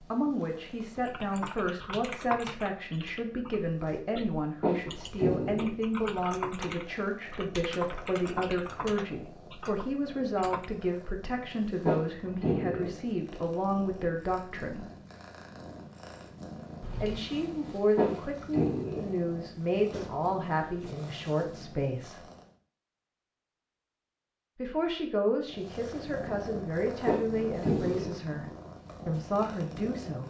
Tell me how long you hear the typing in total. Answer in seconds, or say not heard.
10 s.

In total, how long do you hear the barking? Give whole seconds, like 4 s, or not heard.
4 s.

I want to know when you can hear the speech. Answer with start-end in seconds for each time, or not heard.
0.0-14.8, 17.0-22.2, 24.6-28.4, 29.1-30.2.